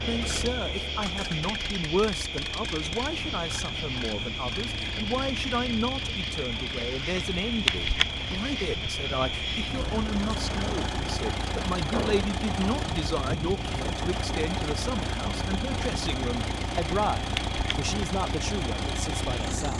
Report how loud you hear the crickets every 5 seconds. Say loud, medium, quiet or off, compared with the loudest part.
loud, loud, medium, medium.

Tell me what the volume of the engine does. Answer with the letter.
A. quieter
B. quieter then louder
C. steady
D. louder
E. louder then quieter
D.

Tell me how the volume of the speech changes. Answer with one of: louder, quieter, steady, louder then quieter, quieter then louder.
steady.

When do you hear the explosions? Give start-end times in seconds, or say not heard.
11.9-12.3.